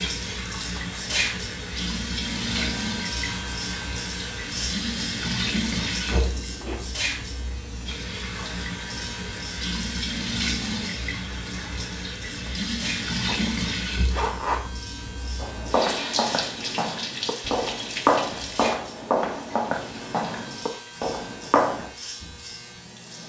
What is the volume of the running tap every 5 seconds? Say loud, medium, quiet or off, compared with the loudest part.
loud, loud, loud, loud, quiet.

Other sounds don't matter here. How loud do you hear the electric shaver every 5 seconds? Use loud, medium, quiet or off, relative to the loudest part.
loud, loud, medium, medium, medium.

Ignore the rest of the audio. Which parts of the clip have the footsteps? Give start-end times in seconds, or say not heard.
15.3-21.9.